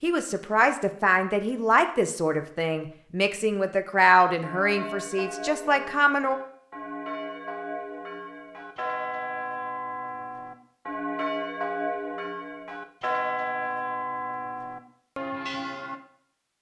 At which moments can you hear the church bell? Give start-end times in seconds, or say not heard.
4.2-16.0.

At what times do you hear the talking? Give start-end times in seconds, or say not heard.
0.0-6.4.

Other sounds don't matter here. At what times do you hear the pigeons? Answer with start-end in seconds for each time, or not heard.
not heard.